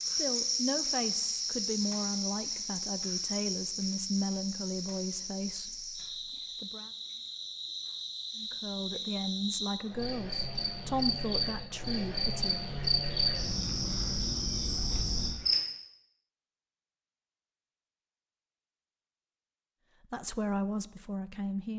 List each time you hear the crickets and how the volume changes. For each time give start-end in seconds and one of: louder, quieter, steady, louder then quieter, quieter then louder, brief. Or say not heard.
0.0-15.6 quieter then louder.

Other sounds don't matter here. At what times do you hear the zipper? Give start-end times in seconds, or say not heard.
not heard.